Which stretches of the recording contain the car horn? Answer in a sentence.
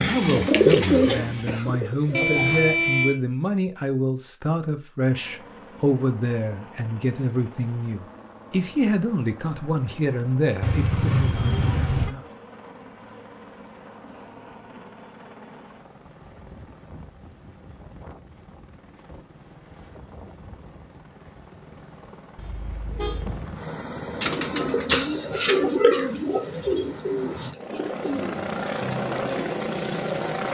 The car horn can be heard from 2.1 to 3.1 s, from 10.6 to 12.1 s and from 22.4 to 23.4 s.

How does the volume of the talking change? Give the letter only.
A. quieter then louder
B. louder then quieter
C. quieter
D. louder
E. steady
E.